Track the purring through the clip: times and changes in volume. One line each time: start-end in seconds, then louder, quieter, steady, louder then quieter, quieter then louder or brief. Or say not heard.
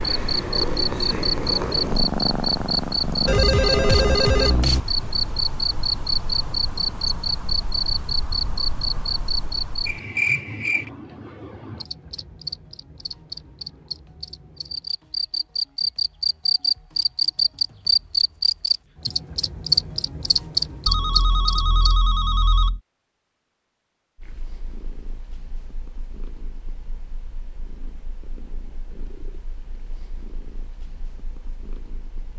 0.0-4.8 steady
24.1-32.3 steady.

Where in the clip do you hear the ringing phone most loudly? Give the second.
4 s.